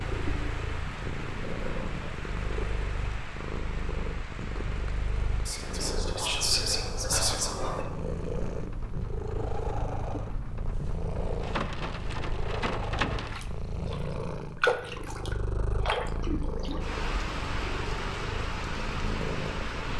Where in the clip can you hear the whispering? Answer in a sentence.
You can hear the whispering from 5.5 to 7.8 s.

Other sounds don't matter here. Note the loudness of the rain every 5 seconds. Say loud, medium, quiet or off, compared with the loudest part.
medium, medium, loud, loud.